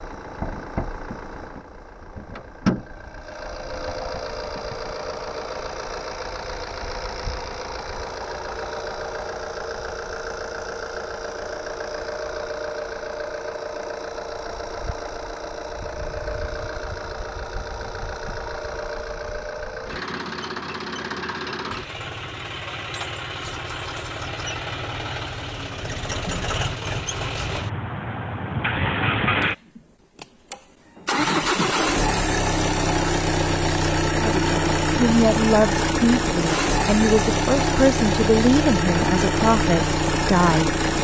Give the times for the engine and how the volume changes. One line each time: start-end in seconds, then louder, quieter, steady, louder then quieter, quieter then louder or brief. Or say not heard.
0.0-41.0 louder.